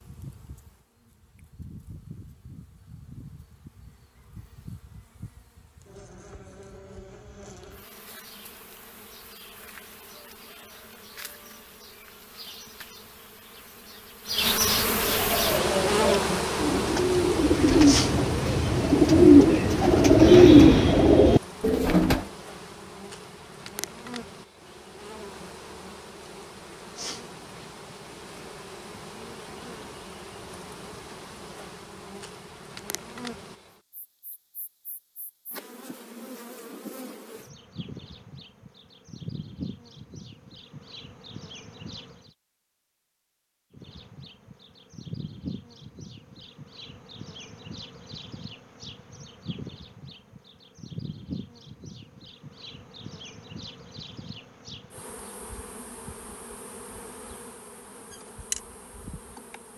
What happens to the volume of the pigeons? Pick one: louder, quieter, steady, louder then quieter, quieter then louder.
louder.